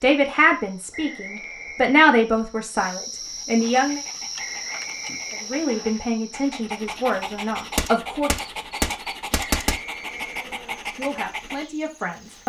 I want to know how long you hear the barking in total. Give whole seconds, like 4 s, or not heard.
8 s.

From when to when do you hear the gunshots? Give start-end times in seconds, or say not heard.
7.8-9.8.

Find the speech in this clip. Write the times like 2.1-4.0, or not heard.
0.0-4.0, 5.5-8.3, 10.9-12.4.